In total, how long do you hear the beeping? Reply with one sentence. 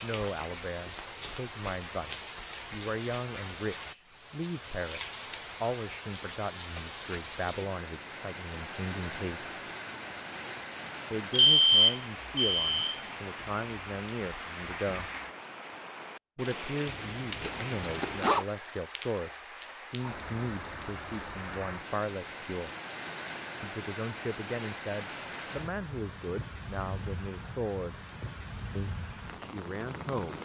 The beeping can be heard for 3 seconds in total.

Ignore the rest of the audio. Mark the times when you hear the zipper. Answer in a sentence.
You can hear the zipper from 17.4 to 18.4 s.